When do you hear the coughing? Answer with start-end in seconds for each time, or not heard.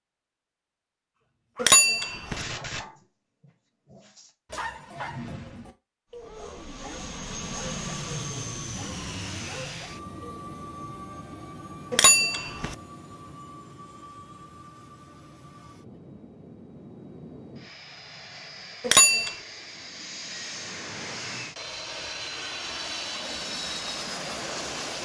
not heard.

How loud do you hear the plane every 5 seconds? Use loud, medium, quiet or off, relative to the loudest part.
off, loud, medium, medium, loud.